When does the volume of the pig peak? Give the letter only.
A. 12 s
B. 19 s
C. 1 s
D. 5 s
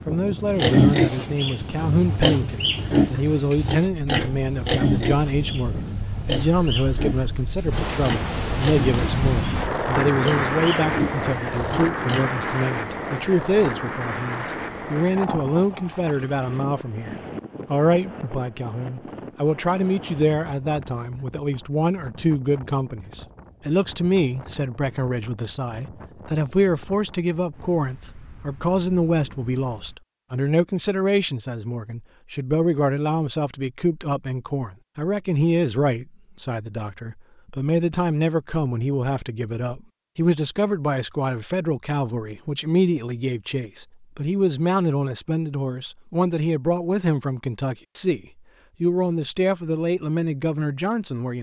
C.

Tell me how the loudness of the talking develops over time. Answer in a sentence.
The loudness of the talking stays about the same.